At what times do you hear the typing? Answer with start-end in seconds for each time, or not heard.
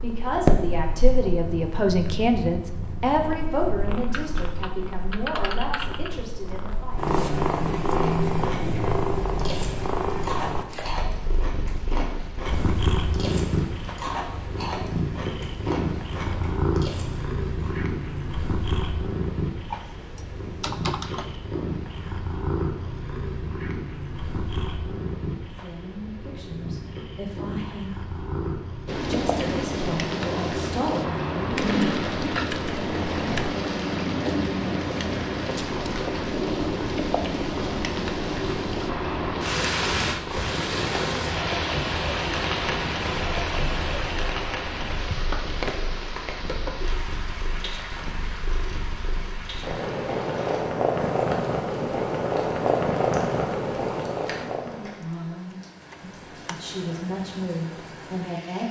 4.1-6.1, 19.7-21.4, 31.5-33.5, 55.5-56.6.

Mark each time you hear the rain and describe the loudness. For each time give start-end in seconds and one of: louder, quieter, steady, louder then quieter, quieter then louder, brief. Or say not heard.
28.9-58.6 quieter.